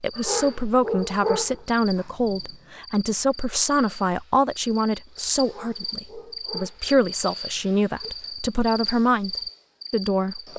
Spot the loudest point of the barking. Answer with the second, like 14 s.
1 s.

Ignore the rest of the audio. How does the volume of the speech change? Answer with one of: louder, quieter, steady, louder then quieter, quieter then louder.
steady.